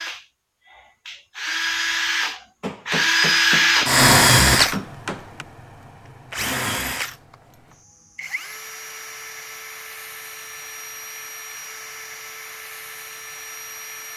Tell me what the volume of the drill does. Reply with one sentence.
The volume of the drill goes up, then down.